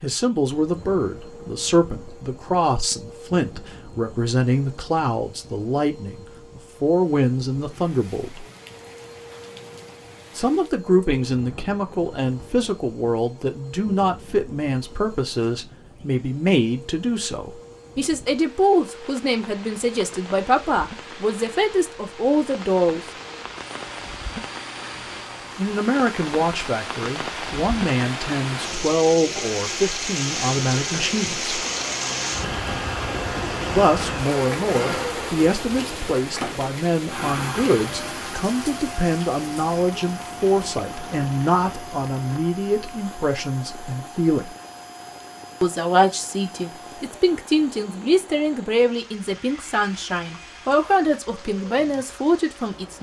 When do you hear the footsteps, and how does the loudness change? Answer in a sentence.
You can't hear the footsteps here.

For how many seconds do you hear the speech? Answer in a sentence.
The speech can be heard for 45 seconds in total.